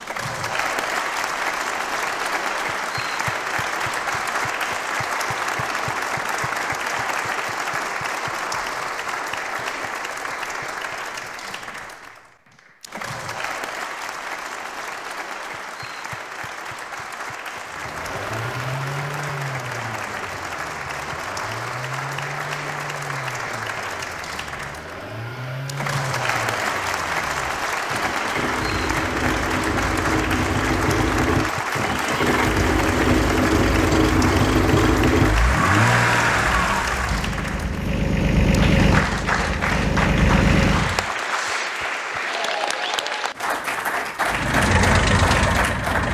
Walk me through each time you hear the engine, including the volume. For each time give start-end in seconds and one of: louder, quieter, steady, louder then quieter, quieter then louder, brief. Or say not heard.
17.6-41.1 louder
44.2-46.0 brief.